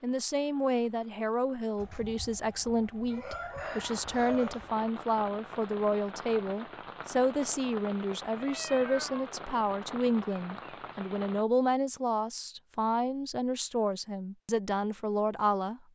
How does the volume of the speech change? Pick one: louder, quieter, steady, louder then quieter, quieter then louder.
steady.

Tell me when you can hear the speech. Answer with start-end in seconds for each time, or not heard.
0.0-15.8.